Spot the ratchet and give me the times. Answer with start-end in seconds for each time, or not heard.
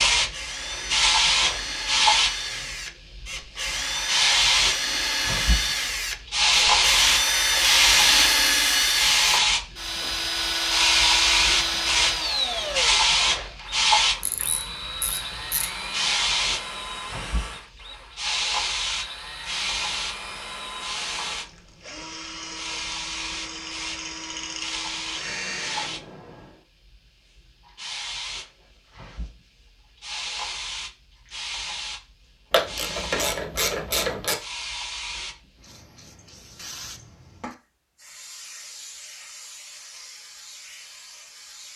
14.2-15.7, 32.5-34.4.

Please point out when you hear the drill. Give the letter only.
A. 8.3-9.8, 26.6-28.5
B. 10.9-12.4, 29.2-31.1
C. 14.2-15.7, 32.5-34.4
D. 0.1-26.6
D.